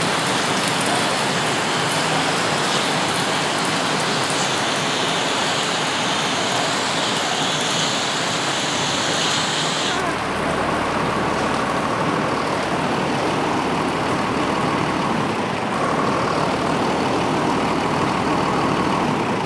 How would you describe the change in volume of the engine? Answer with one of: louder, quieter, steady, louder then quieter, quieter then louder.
louder.